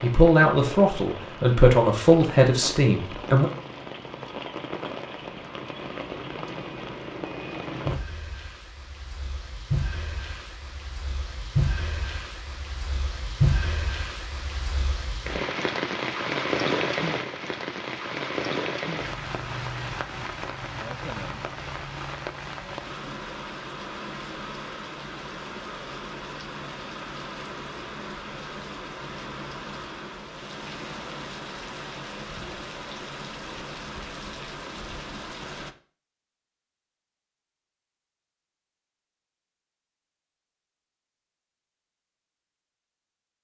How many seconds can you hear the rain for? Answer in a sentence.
The rain can be heard for 36 seconds in total.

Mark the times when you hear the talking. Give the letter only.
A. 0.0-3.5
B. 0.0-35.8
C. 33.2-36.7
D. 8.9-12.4
A.